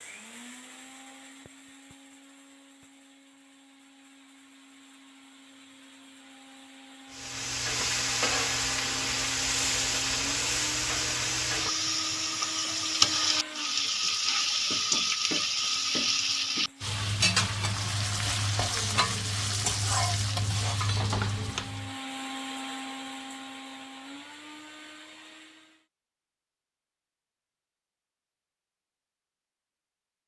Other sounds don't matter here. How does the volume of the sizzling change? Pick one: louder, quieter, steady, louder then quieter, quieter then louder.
steady.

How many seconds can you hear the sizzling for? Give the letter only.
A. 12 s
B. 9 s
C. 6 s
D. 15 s
D.